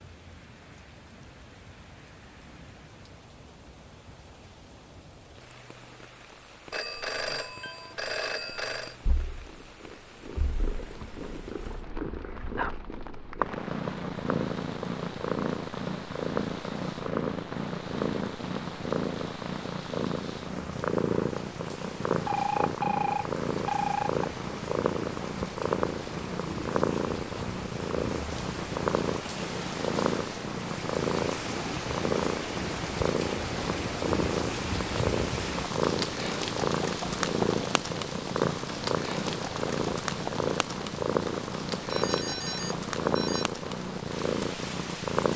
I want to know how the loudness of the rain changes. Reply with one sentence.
The volume of the rain goes up.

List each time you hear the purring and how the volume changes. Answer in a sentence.
The purring can be heard from 9.0 to 45.3 s, at a steady volume.